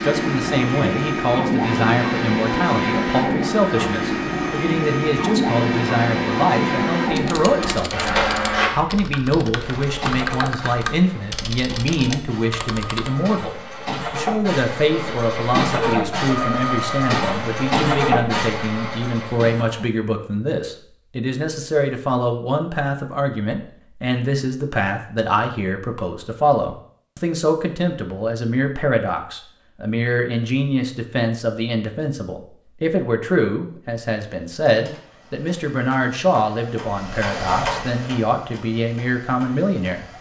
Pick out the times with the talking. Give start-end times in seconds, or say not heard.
0.0-40.0.